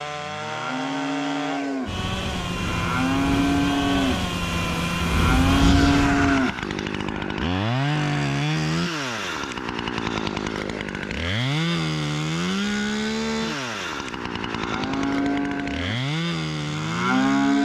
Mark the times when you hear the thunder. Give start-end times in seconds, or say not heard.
1.9-6.5.